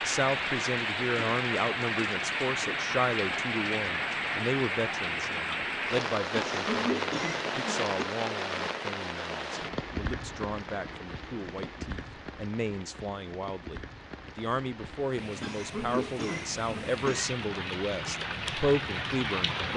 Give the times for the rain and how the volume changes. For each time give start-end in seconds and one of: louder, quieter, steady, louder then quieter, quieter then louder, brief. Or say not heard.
0.0-19.7 quieter then louder.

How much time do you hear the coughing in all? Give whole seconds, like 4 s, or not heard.
4 s.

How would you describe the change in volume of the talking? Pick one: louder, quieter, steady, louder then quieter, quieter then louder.
quieter then louder.